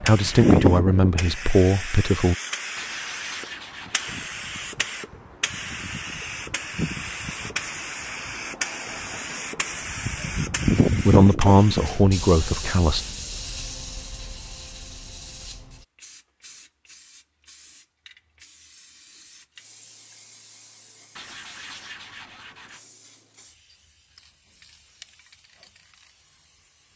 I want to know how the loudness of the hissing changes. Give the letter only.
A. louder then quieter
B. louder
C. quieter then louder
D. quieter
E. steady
D.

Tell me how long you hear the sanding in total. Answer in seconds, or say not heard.
3 s.